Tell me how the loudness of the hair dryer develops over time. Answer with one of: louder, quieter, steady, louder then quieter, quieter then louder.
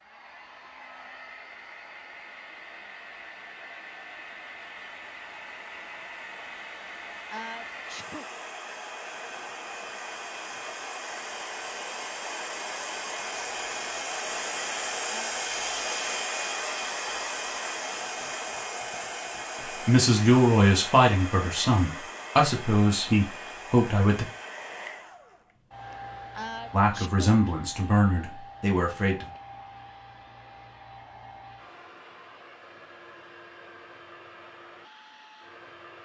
louder then quieter.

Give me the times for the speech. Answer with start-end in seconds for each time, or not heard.
19.9-24.2, 26.7-29.3.